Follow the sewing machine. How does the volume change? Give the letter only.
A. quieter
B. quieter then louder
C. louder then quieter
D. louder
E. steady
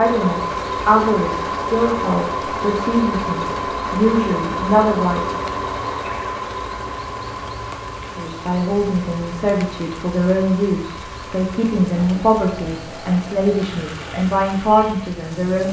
A.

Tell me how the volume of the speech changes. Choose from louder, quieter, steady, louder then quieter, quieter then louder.
steady.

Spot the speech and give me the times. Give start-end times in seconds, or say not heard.
0.0-5.4, 8.1-15.6.